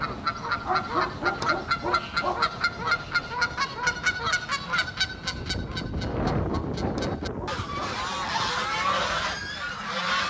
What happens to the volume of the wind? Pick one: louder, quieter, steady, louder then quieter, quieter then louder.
louder then quieter.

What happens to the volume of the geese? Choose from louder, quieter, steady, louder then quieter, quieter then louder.
quieter then louder.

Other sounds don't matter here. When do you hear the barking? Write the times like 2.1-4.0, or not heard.
0.6-2.5, 6.2-7.7.